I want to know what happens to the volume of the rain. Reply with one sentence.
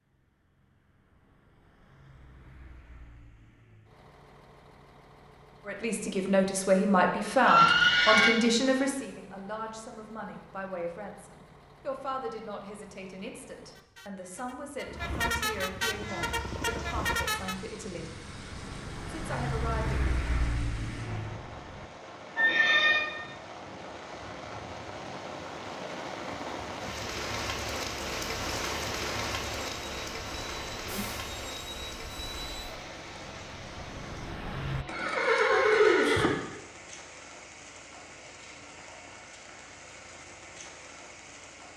The volume of the rain goes up, then down.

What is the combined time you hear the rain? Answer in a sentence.
You can hear the rain for 26 seconds altogether.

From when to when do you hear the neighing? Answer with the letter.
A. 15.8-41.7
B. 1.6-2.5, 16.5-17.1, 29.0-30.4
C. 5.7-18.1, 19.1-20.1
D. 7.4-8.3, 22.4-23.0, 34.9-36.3
D.